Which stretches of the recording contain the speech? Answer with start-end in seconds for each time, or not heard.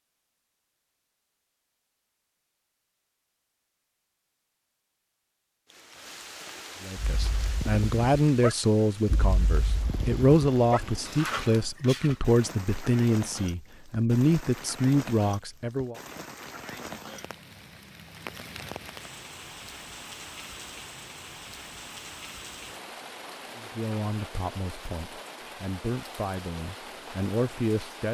6.8-15.9, 23.6-28.0.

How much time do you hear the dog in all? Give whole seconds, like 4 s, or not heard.
5 s.